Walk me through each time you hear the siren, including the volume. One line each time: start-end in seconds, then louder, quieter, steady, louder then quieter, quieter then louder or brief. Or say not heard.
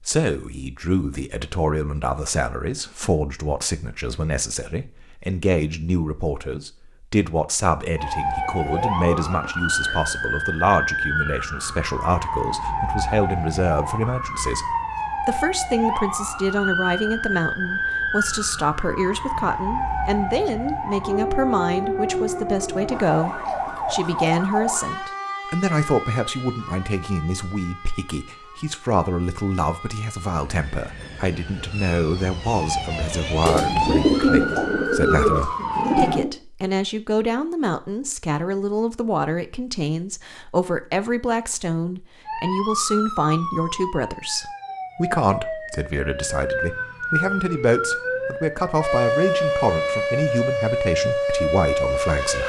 8.0-36.2 quieter then louder
42.2-52.4 louder.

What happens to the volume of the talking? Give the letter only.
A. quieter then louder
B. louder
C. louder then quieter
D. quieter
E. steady
E.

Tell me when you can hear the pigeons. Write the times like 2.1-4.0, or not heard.
8.0-10.2, 33.5-36.3.